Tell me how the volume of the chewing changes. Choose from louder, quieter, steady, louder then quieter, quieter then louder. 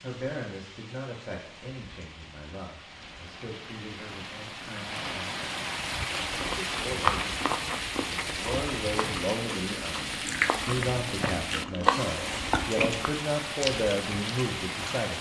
quieter then louder.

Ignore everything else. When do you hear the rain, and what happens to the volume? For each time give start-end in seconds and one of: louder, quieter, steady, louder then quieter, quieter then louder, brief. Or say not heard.
0.0-15.1 louder.